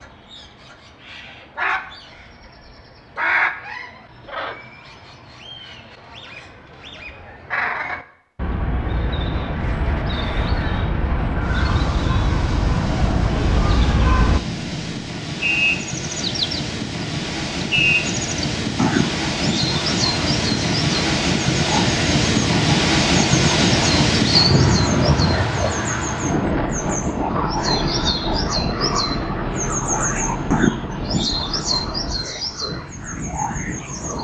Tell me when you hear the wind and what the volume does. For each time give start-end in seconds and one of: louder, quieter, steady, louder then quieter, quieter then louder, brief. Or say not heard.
8.9-34.1 louder then quieter.